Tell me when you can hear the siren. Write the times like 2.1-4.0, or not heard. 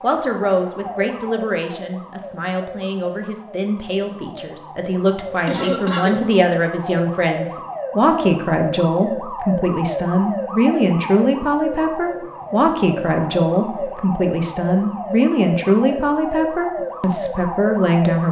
0.0-18.2.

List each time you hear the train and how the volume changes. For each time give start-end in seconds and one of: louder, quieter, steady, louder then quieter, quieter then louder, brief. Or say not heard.
not heard.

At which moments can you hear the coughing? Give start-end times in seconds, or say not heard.
5.5-6.2.